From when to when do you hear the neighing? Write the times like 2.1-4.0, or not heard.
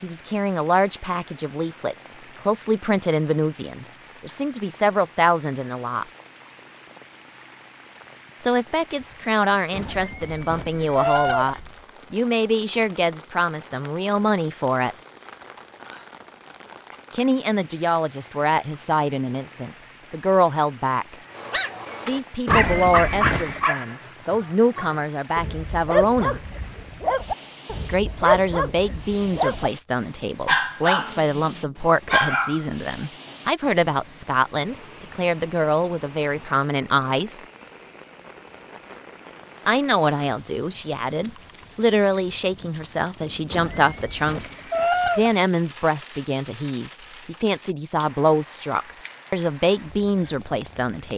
9.7-11.6, 22.4-23.8, 43.5-45.4.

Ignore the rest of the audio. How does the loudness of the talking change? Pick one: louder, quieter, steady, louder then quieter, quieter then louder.
steady.